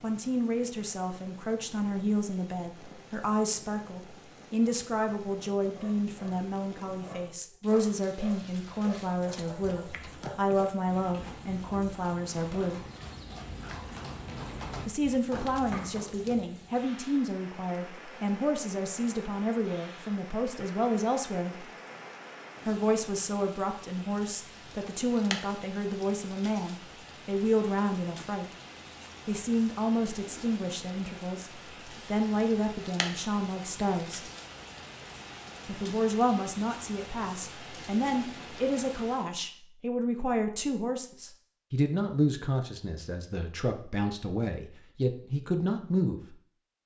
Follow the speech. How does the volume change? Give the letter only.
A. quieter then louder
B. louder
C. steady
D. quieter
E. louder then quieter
C.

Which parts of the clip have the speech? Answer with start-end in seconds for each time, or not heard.
0.0-12.8, 14.8-21.7, 22.6-28.5, 29.2-34.3, 35.6-46.4.